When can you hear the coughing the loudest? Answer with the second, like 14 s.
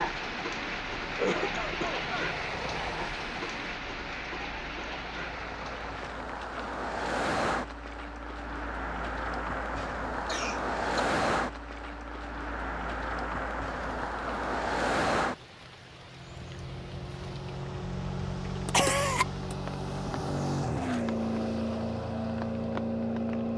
19 s.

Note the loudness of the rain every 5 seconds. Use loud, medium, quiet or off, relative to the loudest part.
loud, medium, quiet, quiet, quiet.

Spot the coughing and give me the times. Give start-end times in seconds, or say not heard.
1.1-2.3, 9.8-11.1, 18.6-19.6.